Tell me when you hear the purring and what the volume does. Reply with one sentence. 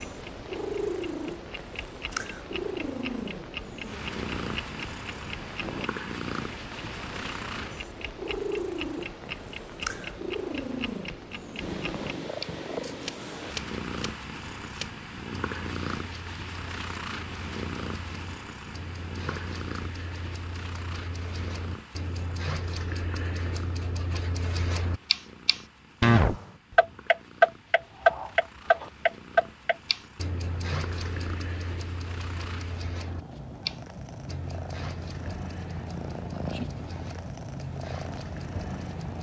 The purring can be heard from 0.0 to 39.1 s, getting quieter then louder.